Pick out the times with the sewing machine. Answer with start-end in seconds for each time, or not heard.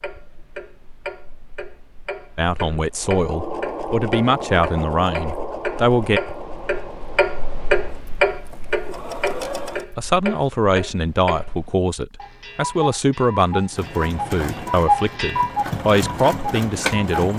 3.0-9.8, 13.7-17.3.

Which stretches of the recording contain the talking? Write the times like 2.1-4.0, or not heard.
2.4-6.2, 9.9-17.3.